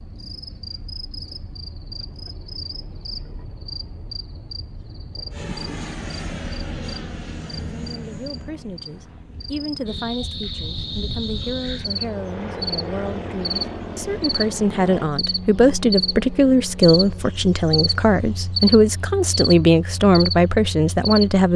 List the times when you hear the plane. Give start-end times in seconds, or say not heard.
5.3-15.1.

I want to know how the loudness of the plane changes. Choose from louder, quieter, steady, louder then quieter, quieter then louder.
quieter then louder.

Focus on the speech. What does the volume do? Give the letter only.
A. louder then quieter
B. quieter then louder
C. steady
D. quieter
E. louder
E.